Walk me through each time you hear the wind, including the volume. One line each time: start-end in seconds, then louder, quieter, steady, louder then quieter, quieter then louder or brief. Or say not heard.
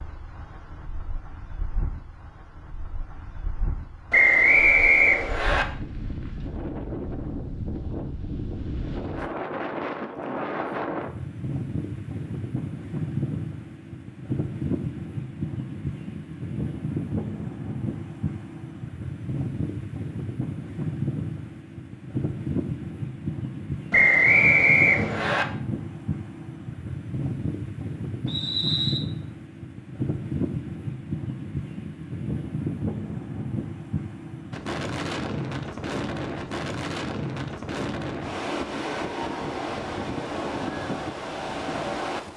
0.0-42.3 louder.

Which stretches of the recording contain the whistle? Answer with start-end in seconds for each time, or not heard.
4.1-5.7, 23.9-25.4, 28.2-29.1.